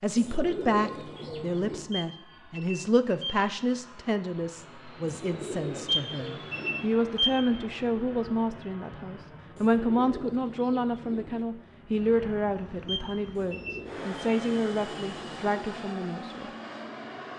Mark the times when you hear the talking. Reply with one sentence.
The talking can be heard from 0.0 to 16.5 s.